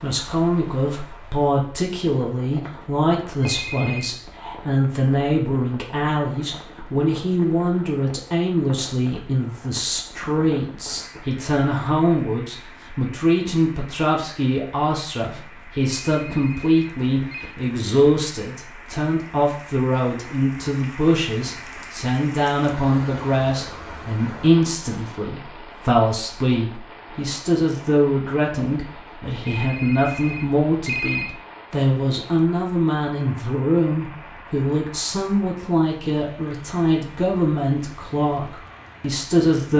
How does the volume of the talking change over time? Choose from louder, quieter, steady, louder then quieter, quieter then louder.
steady.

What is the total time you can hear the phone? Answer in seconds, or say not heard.
4 s.